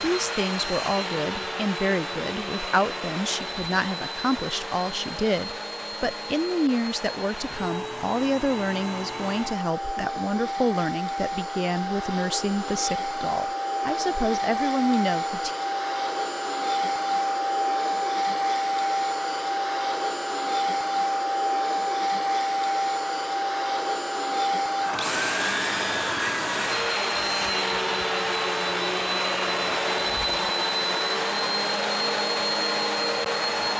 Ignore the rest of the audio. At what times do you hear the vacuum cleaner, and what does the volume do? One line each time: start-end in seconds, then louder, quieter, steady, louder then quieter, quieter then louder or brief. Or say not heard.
0.0-33.7 louder.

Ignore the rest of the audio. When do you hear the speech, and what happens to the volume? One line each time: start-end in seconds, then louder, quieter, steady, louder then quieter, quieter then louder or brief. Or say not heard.
0.0-15.5 steady.